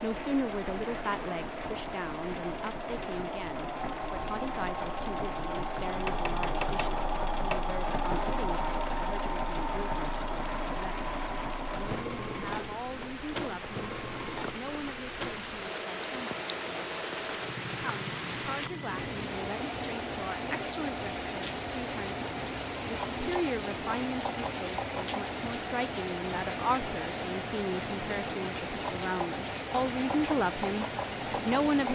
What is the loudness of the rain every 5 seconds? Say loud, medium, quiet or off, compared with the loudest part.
medium, medium, medium, loud, loud, loud, loud.